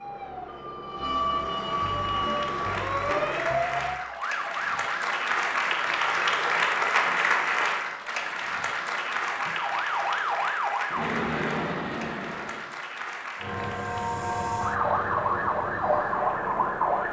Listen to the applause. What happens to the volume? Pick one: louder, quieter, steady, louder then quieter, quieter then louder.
louder then quieter.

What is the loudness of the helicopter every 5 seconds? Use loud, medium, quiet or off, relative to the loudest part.
medium, off, loud, loud.